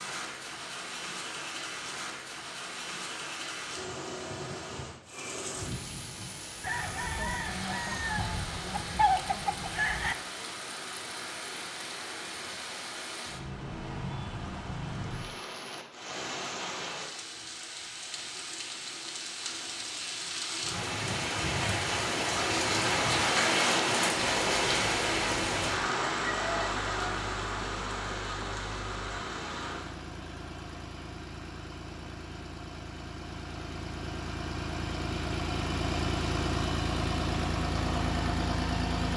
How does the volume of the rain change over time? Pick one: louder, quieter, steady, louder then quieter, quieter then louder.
louder.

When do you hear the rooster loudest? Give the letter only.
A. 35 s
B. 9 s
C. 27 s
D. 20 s
B.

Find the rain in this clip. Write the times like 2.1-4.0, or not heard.
0.0-29.9.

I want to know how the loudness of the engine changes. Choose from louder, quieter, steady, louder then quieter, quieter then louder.
louder.